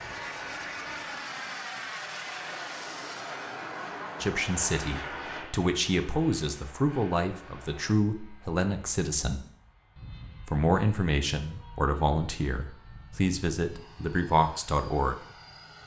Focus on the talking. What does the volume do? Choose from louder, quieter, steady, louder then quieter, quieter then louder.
steady.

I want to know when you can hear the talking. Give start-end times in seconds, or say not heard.
4.2-9.4, 10.4-15.2.